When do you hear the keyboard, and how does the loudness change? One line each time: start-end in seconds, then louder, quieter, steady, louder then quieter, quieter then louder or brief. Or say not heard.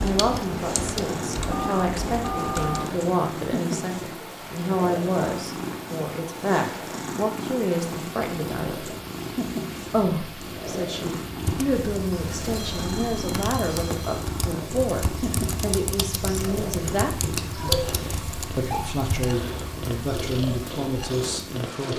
0.0-3.0 brief
11.4-20.6 louder then quieter.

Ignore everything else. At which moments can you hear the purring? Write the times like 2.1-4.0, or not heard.
0.1-21.9.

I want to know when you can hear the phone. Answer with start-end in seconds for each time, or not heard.
1.5-2.9, 12.5-14.2.